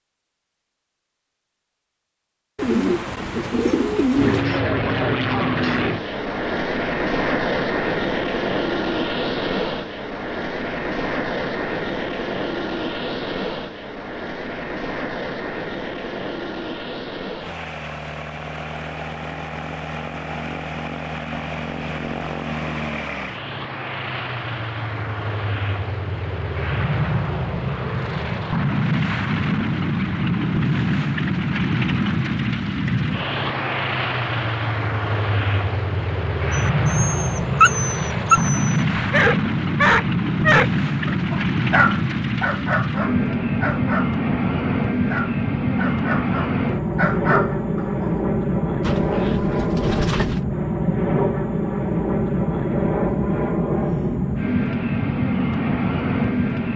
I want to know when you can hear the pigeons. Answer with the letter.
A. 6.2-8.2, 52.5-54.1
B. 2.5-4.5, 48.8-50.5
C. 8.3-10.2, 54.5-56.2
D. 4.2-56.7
B.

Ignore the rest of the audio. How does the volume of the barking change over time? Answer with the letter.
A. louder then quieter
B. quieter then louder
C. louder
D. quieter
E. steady
D.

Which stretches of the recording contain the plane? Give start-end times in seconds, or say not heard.
4.2-56.7.